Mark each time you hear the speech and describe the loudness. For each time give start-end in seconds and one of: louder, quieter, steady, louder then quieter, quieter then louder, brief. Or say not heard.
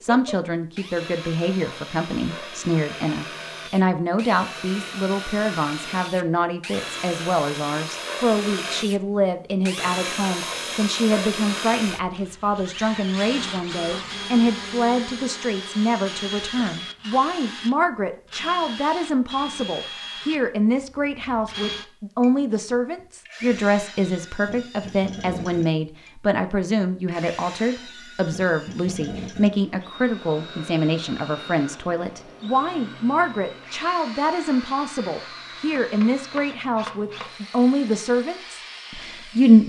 0.0-39.6 steady.